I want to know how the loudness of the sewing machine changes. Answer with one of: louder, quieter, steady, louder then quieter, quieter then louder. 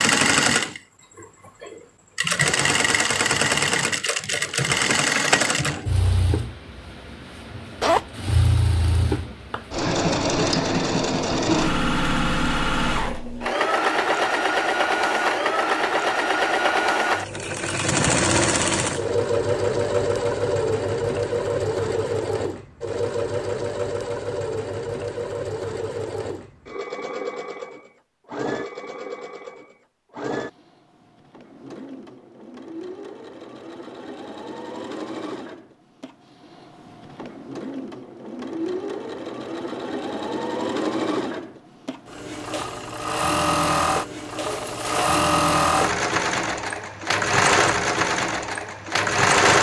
quieter then louder.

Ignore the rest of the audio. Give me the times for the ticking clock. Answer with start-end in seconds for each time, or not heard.
not heard.